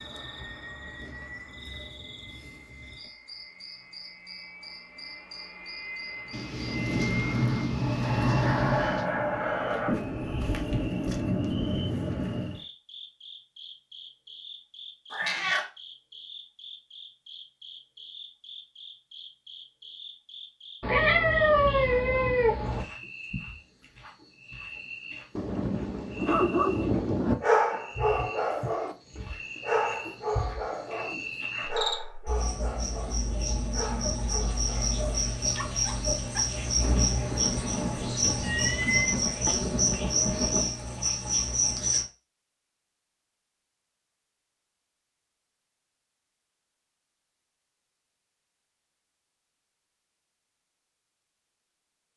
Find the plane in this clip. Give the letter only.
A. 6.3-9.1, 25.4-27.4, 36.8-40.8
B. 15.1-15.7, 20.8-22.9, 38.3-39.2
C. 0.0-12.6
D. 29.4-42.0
C.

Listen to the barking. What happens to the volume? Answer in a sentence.
The loudness of the barking goes down.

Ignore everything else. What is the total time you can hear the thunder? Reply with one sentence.
The thunder can be heard for 9 seconds in total.